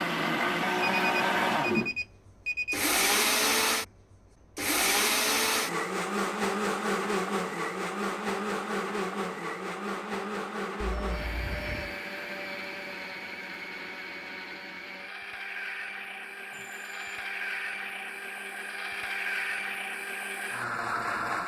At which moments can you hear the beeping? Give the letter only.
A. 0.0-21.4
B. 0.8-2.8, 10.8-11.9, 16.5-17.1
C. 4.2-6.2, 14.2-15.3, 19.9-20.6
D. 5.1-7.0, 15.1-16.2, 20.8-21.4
B.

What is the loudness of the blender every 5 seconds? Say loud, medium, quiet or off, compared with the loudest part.
loud, loud, medium, medium, medium.